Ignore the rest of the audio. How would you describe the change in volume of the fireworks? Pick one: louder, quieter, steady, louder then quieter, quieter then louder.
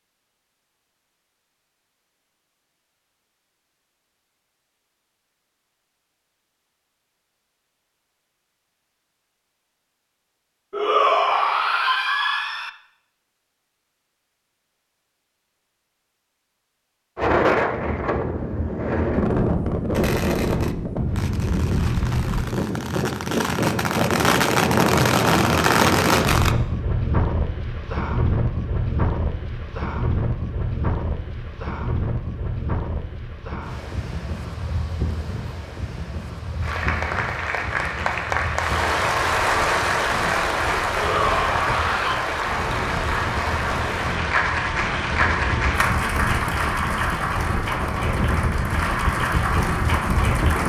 louder.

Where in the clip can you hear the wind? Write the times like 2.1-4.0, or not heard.
17.1-50.6.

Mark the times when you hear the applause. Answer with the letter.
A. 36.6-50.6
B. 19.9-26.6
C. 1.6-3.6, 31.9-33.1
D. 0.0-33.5
A.